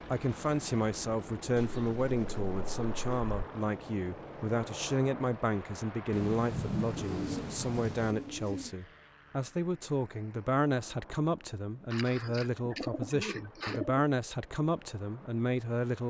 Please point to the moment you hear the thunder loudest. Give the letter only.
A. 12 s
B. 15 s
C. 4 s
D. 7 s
D.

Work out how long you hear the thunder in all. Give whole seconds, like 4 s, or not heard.
2 s.